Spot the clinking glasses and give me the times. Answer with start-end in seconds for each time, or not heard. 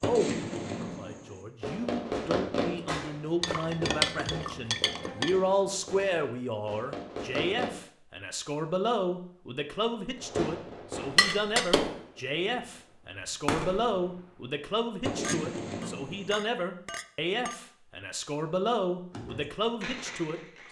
3.4-5.3, 11.2-11.9, 15.2-17.6.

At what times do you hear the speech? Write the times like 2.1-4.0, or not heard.
0.0-20.6.